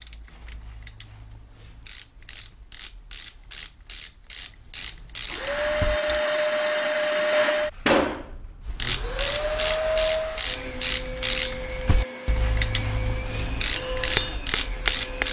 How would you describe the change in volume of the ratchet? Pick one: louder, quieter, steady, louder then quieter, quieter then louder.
louder.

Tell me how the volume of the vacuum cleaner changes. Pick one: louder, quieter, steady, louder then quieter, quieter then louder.
quieter.